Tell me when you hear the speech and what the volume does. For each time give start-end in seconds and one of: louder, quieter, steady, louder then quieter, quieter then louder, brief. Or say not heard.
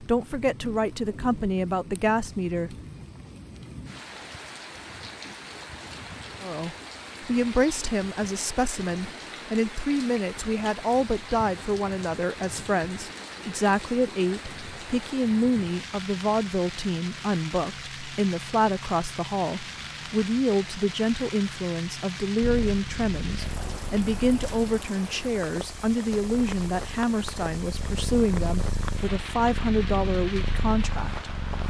0.0-2.8 brief
6.4-31.3 steady.